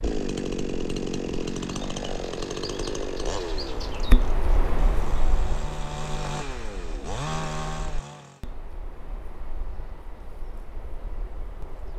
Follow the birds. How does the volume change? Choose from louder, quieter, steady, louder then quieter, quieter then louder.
louder then quieter.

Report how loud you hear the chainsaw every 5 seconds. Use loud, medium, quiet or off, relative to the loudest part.
loud, loud, off.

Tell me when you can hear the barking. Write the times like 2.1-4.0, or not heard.
not heard.